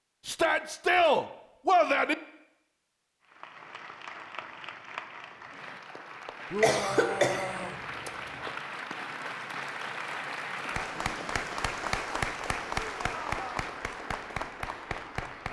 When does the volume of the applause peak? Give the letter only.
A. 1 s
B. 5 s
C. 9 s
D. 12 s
D.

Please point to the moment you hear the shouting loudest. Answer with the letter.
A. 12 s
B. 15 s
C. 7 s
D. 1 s
D.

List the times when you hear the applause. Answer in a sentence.
You can hear the applause from 3.2 to 15.4 s.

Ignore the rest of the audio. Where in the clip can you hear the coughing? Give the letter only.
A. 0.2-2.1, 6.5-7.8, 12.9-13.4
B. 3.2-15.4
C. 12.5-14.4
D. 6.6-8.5
D.